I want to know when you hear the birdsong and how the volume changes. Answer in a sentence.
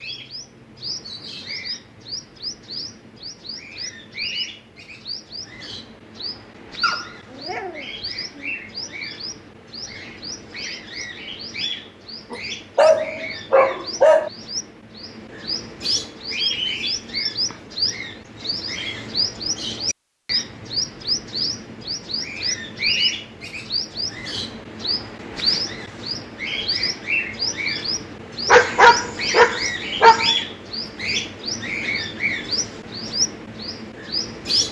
You can hear the birdsong from 0.0 to 34.6 s, getting louder.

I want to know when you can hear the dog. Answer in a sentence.
You can hear the dog from 6.8 to 8.5 s, from 12.3 to 14.3 s and from 28.4 to 30.4 s.